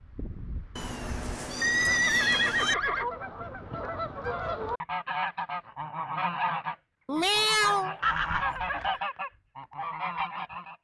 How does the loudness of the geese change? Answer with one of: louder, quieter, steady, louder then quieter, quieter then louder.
louder.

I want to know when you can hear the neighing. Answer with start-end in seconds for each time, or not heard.
1.6-3.0, 8.0-8.8.